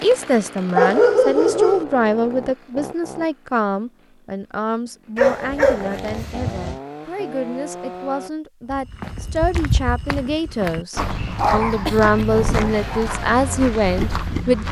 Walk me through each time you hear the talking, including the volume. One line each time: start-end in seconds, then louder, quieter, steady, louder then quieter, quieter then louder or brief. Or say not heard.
0.0-14.6 quieter then louder.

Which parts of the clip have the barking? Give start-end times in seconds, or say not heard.
0.8-1.9, 5.2-6.8, 11.3-13.1.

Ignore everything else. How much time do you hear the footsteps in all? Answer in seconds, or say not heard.
6 s.